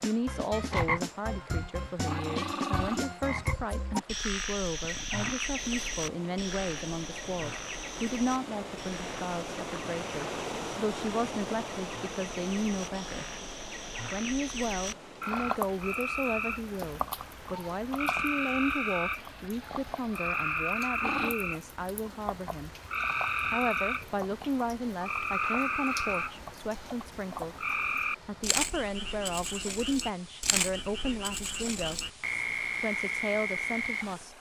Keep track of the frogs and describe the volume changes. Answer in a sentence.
The loudness of the frogs goes down, then up.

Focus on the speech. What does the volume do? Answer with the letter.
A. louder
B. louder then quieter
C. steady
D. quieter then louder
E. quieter
C.